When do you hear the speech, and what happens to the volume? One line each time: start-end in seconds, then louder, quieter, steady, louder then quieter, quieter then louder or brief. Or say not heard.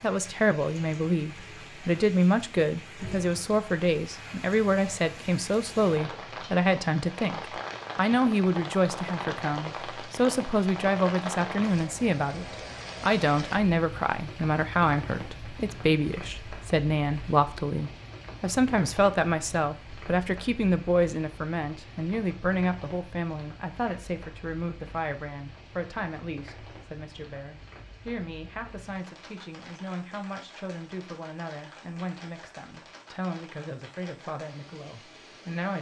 0.0-35.7 quieter.